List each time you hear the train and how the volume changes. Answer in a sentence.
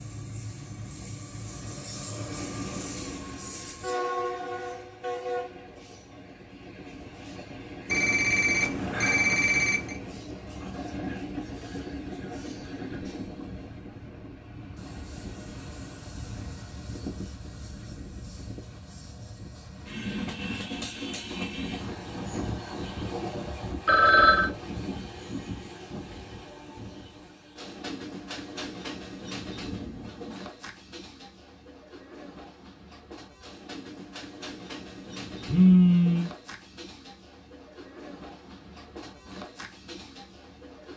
You can hear the train from 0.0 to 40.9 s, getting quieter.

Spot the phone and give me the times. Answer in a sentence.
You can hear the phone from 7.8 to 9.9 s, from 23.9 to 24.5 s and from 35.5 to 36.2 s.